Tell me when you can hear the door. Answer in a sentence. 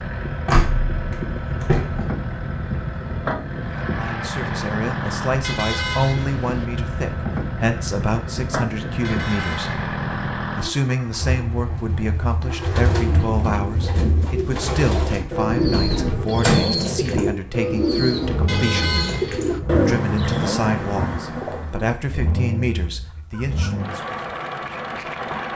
You can hear the door from 0.5 to 2.0 s and from 15.7 to 16.6 s.